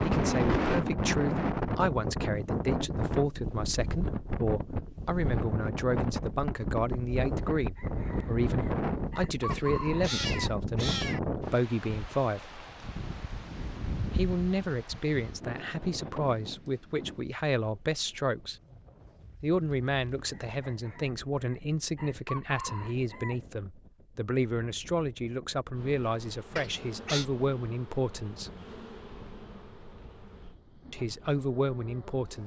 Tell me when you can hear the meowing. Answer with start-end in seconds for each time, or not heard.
9.5-11.2, 26.6-27.2.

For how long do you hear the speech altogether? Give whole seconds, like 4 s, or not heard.
28 s.